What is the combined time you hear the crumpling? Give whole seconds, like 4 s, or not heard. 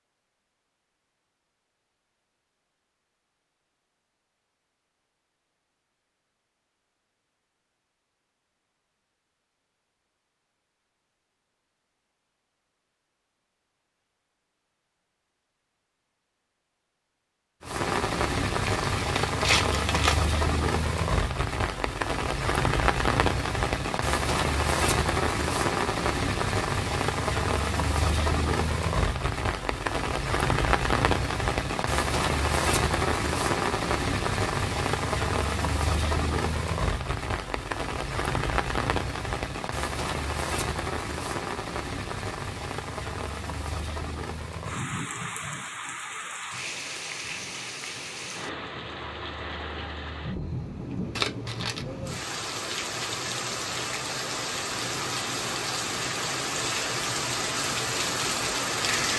2 s.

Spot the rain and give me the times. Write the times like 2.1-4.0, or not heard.
17.6-59.1.